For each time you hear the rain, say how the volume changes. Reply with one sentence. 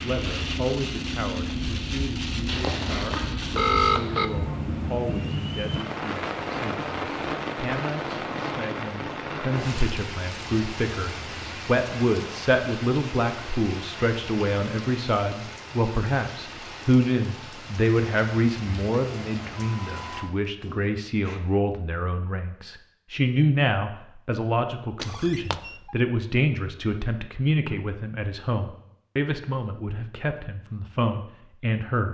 You can hear the rain from 0.0 to 21.4 s, getting quieter.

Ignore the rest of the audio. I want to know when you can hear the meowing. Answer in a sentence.
The meowing can't be heard in this clip.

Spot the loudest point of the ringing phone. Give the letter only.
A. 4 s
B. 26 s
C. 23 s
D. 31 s
A.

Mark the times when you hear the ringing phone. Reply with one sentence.
You can hear the ringing phone from 2.5 to 4.3 s and from 25.0 to 25.7 s.